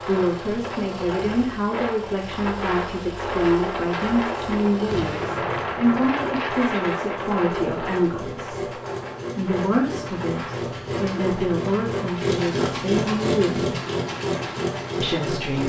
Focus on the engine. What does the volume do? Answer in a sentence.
The volume of the engine goes up.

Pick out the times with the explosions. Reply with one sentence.
You can hear the explosions from 4.8 to 6.3 s.